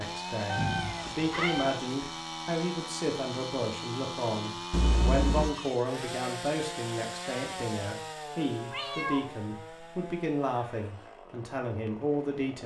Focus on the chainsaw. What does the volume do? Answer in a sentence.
The loudness of the chainsaw goes down.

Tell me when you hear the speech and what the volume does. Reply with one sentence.
You can hear the speech from 0.0 to 12.6 s, at a steady volume.